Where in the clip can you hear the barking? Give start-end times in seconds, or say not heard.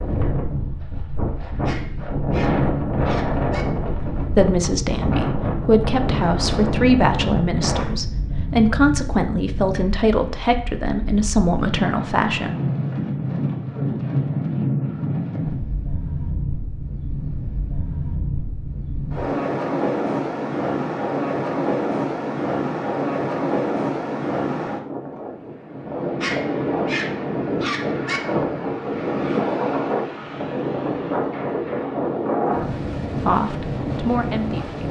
1.6-3.6, 26.2-28.2.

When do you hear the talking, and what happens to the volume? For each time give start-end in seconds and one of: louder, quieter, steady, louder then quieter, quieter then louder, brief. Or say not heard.
4.3-12.5 steady
33.1-34.8 brief.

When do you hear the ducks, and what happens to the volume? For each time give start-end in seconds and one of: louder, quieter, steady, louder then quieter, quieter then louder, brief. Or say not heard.
not heard.